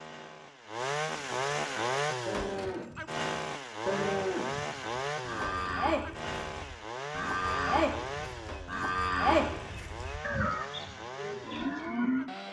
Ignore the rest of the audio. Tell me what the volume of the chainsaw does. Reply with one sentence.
The volume of the chainsaw goes down.